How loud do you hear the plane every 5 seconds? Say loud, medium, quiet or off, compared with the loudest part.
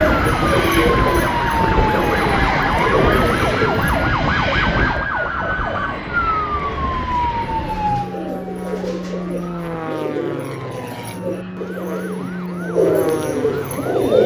loud, medium, medium.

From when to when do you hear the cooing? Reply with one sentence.
You can hear the cooing from 0.0 to 4.2 s and from 7.4 to 14.2 s.